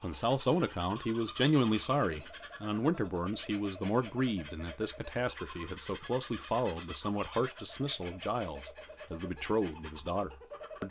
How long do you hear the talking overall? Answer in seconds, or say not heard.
11 s.